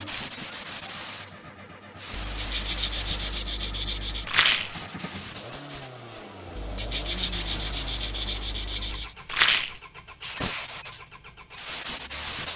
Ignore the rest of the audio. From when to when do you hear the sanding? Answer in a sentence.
You can hear the sanding from 2.1 to 4.3 s and from 6.5 to 9.2 s.